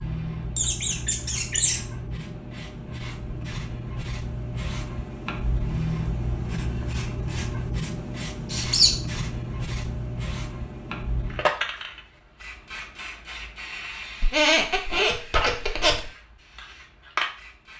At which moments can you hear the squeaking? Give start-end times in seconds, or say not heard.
0.6-1.8, 8.5-8.9, 14.2-16.1.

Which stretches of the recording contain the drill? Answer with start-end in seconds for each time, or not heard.
not heard.